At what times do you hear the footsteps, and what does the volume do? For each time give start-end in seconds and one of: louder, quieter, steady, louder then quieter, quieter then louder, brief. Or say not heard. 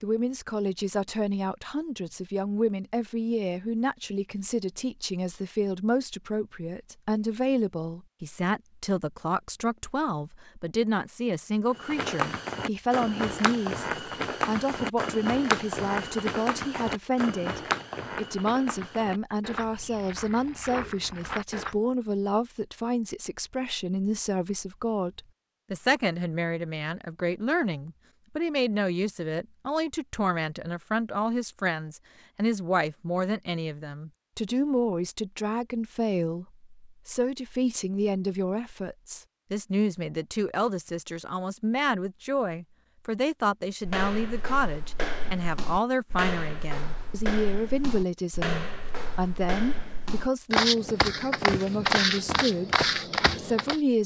11.7-21.8 quieter
43.9-53.8 louder.